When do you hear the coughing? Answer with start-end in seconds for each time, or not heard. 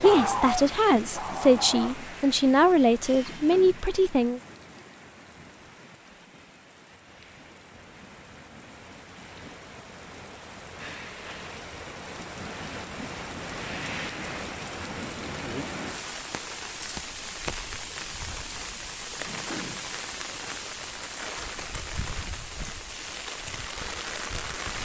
not heard.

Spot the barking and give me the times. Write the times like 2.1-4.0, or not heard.
0.0-2.1.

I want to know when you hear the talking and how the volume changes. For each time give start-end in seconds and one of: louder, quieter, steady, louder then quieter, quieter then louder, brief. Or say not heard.
0.0-4.4 steady.